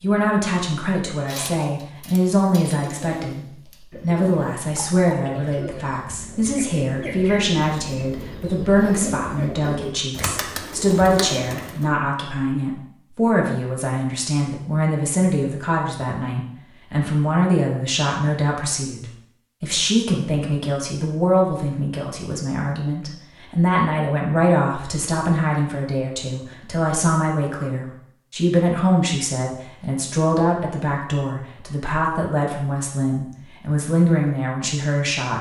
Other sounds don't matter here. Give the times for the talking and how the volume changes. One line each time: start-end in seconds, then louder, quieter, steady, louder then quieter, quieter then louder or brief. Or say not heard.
0.0-35.3 steady.